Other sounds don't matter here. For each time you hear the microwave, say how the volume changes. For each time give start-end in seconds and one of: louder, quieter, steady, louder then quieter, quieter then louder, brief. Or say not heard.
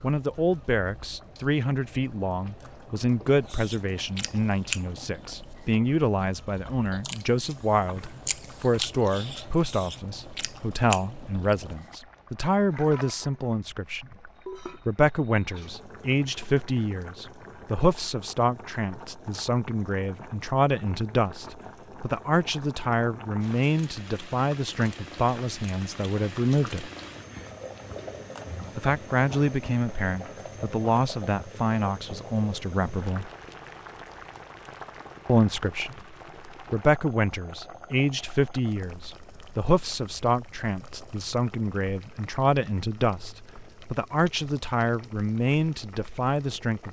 not heard.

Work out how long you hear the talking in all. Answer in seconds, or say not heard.
43 s.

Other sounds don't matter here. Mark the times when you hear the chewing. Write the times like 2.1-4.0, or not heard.
3.5-11.9.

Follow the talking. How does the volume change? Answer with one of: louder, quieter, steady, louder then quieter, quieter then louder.
steady.